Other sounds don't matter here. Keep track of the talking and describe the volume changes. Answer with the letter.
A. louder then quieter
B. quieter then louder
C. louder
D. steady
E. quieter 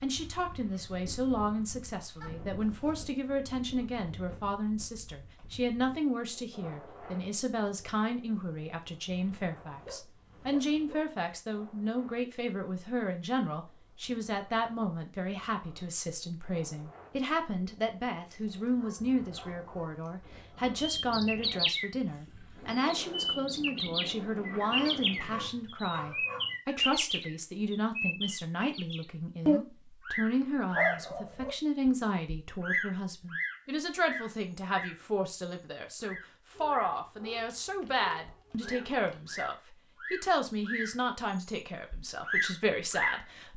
D.